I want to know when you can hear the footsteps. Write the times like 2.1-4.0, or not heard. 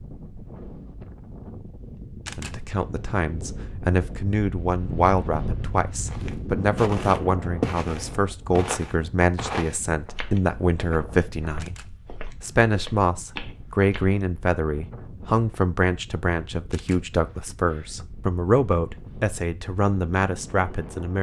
6.0-14.2.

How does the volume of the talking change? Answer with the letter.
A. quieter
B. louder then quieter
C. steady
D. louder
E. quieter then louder
C.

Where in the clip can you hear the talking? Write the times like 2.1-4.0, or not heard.
2.4-21.1.